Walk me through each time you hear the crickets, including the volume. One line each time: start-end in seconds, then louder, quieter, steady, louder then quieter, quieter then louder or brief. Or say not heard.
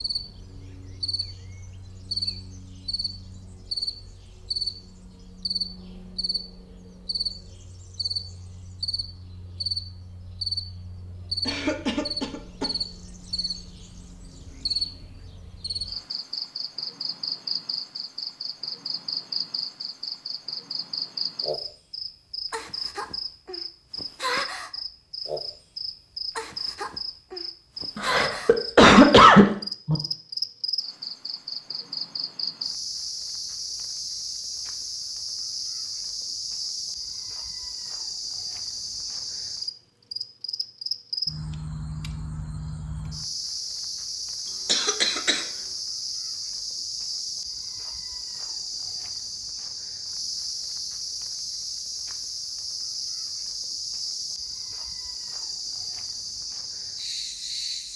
0.0-57.9 steady.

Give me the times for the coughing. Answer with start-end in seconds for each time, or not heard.
11.4-12.7, 27.9-29.9, 44.6-45.5.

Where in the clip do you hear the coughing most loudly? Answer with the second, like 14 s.
29 s.